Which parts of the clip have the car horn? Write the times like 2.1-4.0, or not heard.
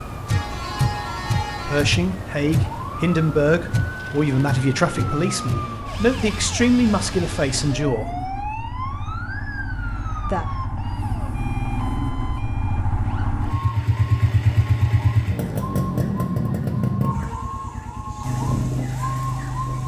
0.3-1.9.